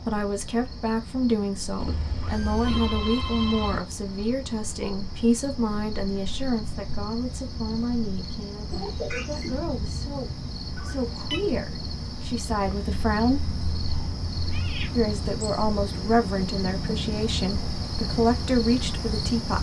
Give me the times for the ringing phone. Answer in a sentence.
The ringing phone can be heard from 2.6 to 3.9 s and from 10.8 to 11.4 s.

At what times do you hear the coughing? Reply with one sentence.
You can't hear the coughing here.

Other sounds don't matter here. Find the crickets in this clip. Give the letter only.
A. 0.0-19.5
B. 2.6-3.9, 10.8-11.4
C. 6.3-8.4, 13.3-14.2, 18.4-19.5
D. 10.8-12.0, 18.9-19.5
A.